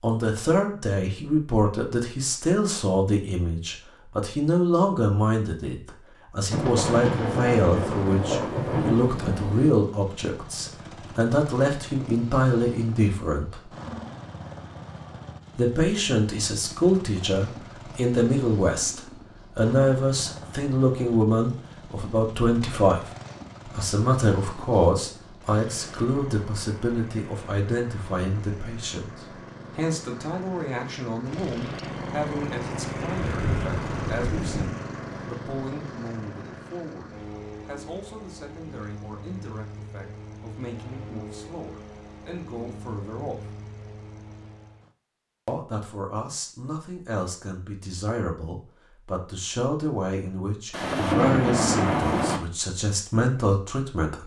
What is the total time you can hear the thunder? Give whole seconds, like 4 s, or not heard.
6 s.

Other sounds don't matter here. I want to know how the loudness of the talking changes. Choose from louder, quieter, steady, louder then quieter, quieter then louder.
quieter then louder.